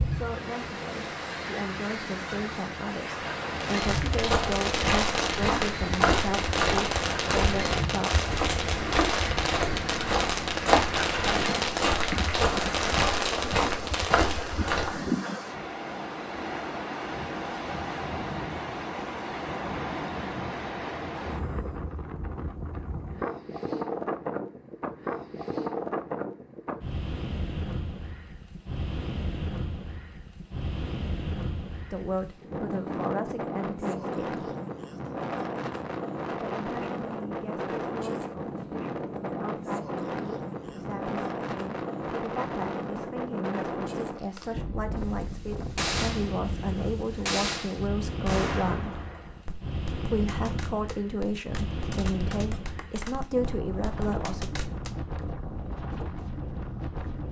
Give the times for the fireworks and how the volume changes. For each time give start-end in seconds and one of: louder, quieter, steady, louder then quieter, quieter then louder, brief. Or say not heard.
3.5-14.6 steady
44.1-55.2 quieter.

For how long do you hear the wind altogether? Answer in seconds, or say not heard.
57 s.